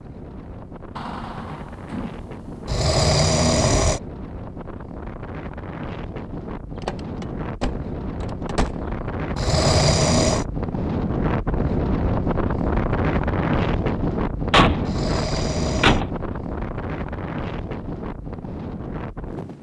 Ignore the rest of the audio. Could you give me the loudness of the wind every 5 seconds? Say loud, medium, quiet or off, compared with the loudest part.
quiet, medium, loud, medium.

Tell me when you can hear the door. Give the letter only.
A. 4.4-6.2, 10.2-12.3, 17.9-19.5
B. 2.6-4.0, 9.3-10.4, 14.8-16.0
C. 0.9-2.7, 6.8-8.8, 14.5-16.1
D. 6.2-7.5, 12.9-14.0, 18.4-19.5
C.